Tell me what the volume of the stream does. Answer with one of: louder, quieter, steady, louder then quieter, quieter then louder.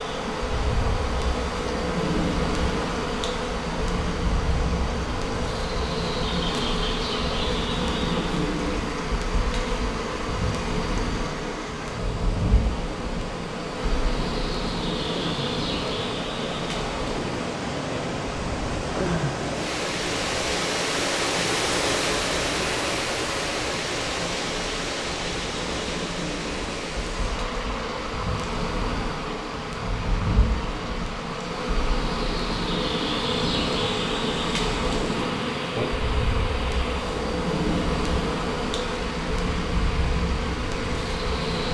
louder then quieter.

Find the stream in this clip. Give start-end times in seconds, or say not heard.
0.0-41.6.